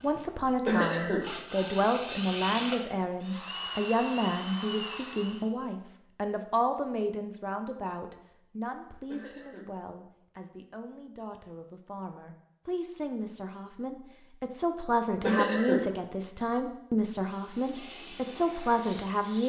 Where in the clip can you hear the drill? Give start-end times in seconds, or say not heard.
0.0-5.5, 17.2-19.4.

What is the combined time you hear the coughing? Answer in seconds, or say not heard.
2 s.